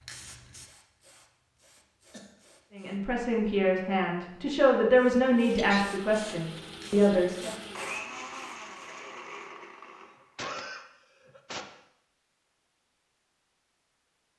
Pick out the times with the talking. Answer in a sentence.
You can hear the talking from 2.8 to 7.5 s.